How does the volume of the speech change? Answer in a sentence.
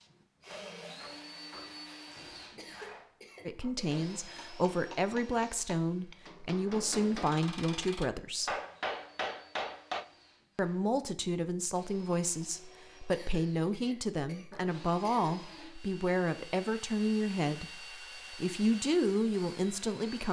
The loudness of the speech stays about the same.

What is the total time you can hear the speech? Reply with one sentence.
You can hear the speech for 15 seconds altogether.